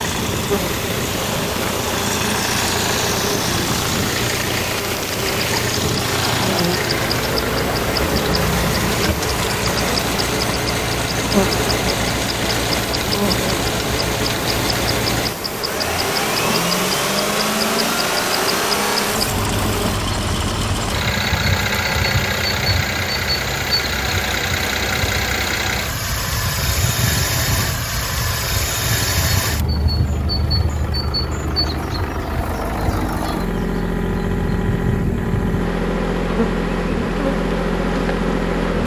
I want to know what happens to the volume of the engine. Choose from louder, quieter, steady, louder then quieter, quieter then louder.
steady.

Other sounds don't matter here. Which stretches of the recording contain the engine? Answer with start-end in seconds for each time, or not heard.
0.0-38.8.